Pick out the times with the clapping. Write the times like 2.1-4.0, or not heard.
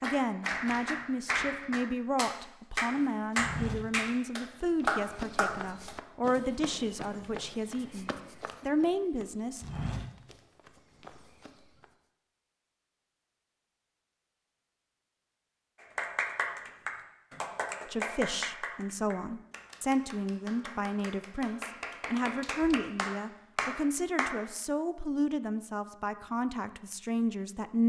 0.0-6.0, 15.8-24.4.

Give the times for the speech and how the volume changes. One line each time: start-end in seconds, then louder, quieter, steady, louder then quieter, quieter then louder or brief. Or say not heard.
0.0-9.7 steady
17.9-27.8 steady.